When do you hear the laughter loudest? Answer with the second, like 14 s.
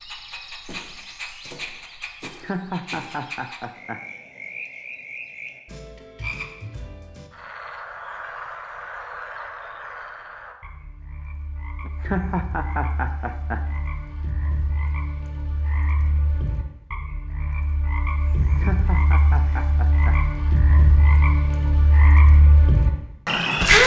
12 s.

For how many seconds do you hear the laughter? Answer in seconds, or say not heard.
5 s.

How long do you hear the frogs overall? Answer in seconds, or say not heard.
24 s.